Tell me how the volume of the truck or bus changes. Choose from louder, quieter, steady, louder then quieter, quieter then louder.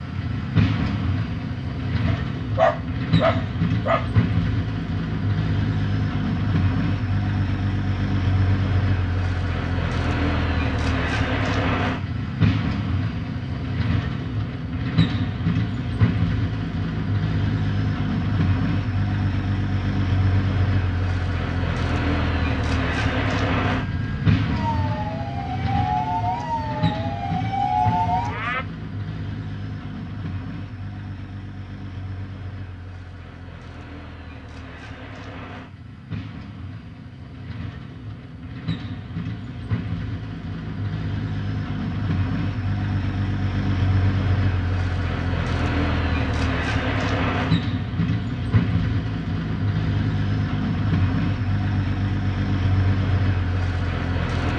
quieter then louder.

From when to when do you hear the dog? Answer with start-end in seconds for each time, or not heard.
2.0-4.0.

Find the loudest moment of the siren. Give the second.
28 s.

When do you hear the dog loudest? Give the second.
3 s.